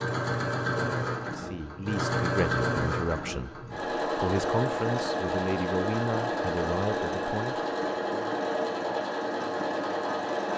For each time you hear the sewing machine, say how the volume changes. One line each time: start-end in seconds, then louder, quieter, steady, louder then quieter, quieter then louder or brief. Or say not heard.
0.0-10.5 steady.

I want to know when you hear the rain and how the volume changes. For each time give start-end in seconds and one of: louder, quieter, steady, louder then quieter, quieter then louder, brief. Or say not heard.
not heard.